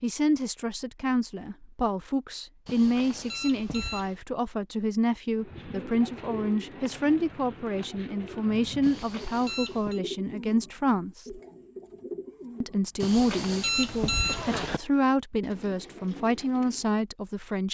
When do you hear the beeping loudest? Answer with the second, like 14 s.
14 s.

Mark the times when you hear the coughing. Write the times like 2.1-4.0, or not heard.
14.2-14.8.